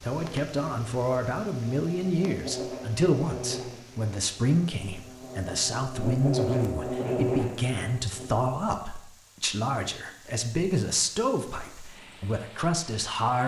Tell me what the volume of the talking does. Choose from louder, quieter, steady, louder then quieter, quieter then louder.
steady.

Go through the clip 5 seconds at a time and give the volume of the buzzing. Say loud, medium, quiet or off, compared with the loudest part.
medium, loud, off.